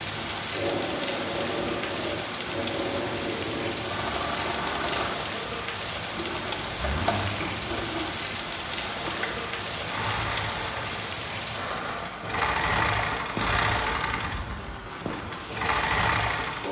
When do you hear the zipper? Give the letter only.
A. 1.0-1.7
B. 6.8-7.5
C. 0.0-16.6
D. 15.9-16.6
B.